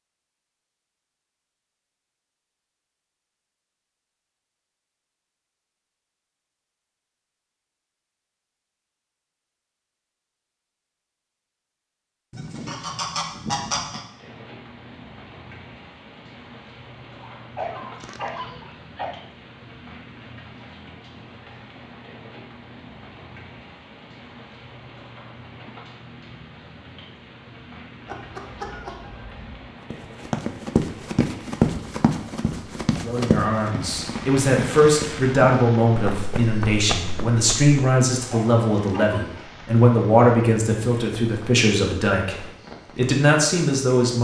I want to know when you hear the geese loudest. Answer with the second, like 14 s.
14 s.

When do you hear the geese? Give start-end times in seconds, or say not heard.
12.3-14.1, 28.1-29.7.